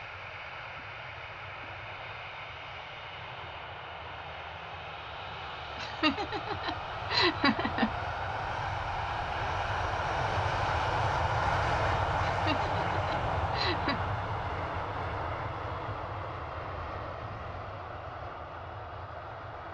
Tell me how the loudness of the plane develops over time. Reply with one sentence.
The volume of the plane goes up, then down.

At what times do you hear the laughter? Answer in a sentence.
You can hear the laughter from 5.8 to 7.9 s and from 12.2 to 14.0 s.